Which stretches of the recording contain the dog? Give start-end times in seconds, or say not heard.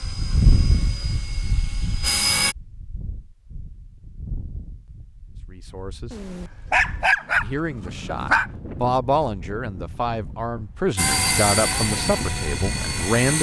6.1-8.5.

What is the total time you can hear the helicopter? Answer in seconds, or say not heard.
5 s.